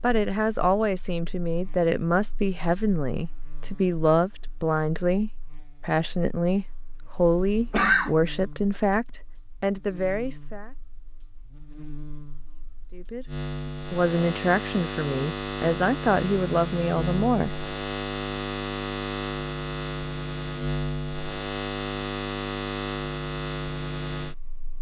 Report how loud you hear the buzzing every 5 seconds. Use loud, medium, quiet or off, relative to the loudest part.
quiet, quiet, medium, loud, loud.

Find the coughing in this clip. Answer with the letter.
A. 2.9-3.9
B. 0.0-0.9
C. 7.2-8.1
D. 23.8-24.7
C.